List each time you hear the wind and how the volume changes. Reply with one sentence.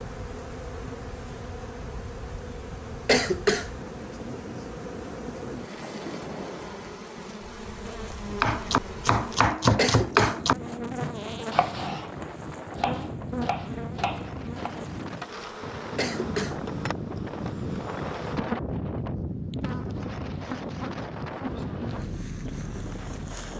You can hear the wind from 0.0 to 23.5 s, getting louder.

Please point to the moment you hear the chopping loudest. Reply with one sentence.
The volume of the chopping peaks at 10 seconds.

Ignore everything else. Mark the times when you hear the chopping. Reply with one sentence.
You can hear the chopping from 8.3 to 14.9 s.